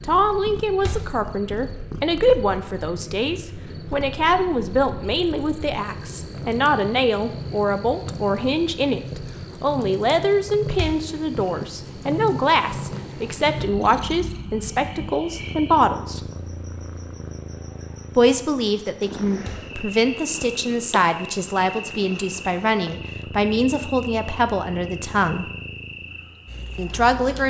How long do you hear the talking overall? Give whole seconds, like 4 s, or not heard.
24 s.